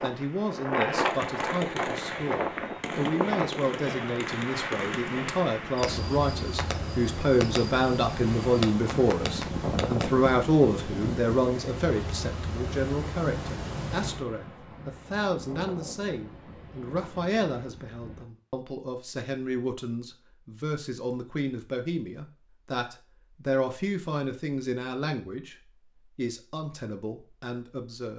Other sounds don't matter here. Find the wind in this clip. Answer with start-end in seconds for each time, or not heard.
0.0-18.2.